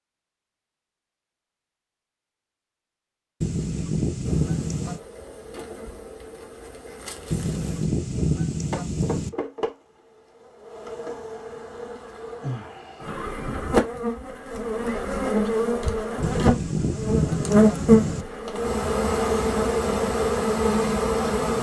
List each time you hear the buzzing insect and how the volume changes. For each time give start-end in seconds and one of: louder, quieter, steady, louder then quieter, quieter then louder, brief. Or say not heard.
4.2-21.5 louder.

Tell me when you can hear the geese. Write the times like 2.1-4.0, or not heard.
3.4-5.0, 7.3-9.3, 16.2-18.2.